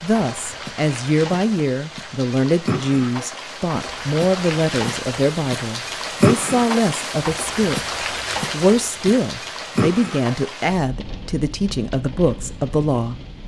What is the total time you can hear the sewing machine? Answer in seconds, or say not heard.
not heard.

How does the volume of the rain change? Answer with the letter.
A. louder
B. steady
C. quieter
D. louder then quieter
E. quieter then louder
D.